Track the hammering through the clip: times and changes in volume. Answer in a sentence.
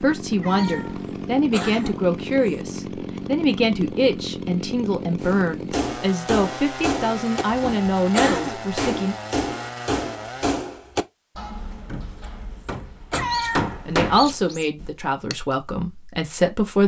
The hammering can be heard from 5.2 to 15.3 s, getting quieter then louder.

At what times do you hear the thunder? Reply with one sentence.
The thunder can't be heard in this clip.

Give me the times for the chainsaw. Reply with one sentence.
The chainsaw can be heard from 0.0 to 10.6 s.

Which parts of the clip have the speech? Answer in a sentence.
The speech can be heard from 0.0 to 9.2 s and from 13.8 to 16.8 s.